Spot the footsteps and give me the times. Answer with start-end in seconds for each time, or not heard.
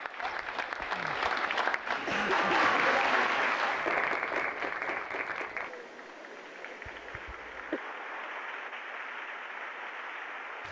not heard.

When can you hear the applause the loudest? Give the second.
3 s.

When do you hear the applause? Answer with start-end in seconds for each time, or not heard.
0.0-10.6.